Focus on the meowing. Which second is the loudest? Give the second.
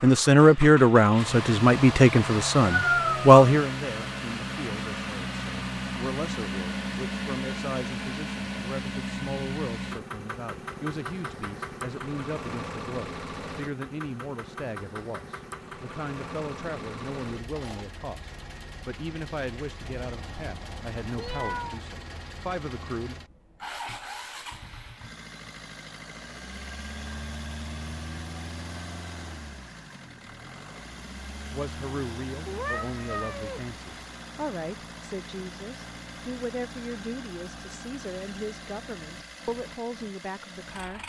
3 s.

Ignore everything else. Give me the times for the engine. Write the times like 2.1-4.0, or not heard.
0.0-41.0.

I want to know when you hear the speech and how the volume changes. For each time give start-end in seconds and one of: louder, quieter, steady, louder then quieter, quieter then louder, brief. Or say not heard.
0.0-23.1 quieter
31.5-41.0 steady.